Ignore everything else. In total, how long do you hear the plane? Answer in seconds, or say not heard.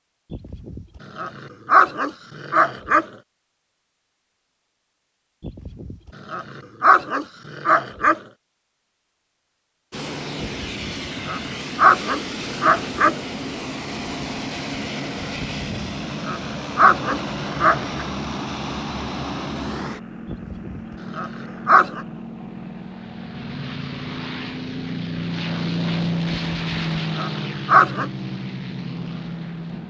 20 s.